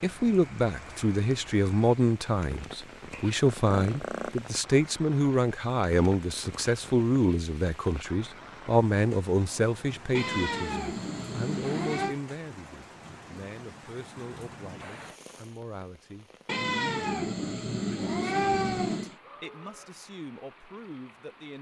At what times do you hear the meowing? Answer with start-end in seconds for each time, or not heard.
3.1-4.5, 10.2-12.2, 16.4-19.1.